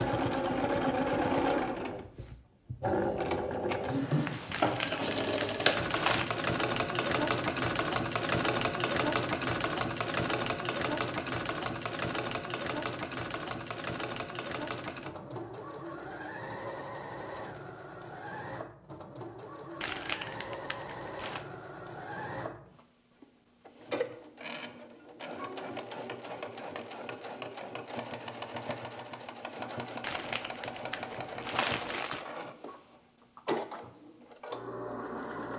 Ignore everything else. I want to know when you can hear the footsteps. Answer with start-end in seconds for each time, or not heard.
not heard.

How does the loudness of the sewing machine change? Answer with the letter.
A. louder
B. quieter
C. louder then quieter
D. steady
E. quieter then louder
B.